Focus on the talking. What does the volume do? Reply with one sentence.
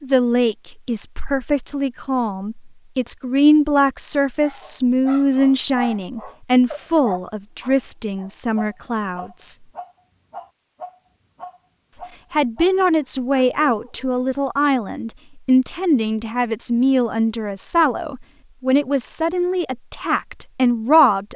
The volume of the talking stays about the same.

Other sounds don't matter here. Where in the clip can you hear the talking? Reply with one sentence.
The talking can be heard from 0.0 to 9.6 s and from 12.3 to 21.3 s.